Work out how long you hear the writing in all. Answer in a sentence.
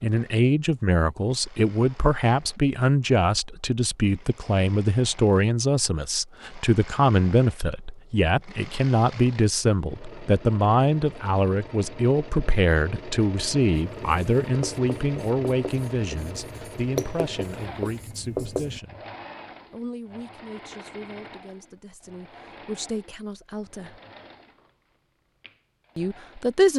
The writing can be heard for 5 seconds in total.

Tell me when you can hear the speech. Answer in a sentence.
You can hear the speech from 0.0 to 19.0 s, from 19.7 to 24.0 s and from 25.9 to 26.7 s.